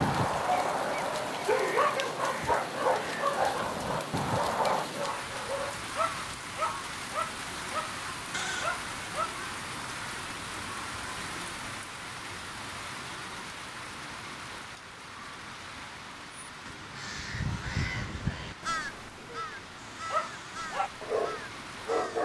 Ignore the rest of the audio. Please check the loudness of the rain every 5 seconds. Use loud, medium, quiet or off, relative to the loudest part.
loud, loud, loud, medium, medium.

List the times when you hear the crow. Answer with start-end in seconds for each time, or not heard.
0.0-4.9, 16.4-22.1.